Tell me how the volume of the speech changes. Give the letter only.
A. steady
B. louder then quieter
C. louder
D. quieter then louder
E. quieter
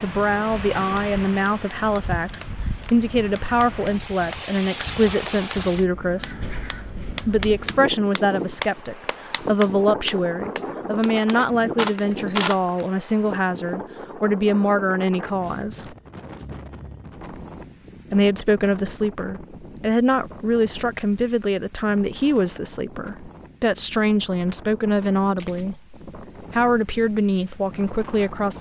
A.